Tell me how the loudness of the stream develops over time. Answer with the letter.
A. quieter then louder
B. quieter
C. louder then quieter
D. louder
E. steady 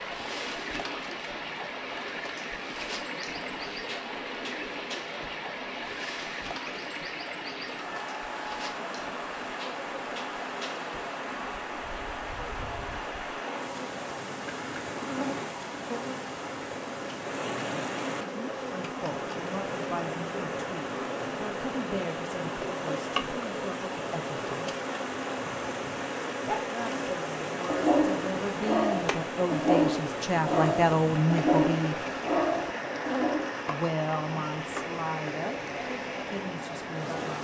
E.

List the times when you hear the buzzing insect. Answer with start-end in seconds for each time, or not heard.
0.0-37.4.